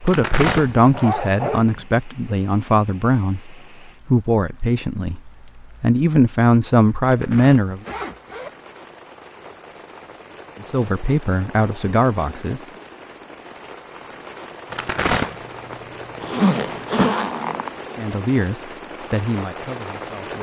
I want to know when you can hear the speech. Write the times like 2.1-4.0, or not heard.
0.0-5.2, 5.8-7.8, 10.6-12.6, 17.9-20.3.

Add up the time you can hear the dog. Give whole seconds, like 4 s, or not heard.
not heard.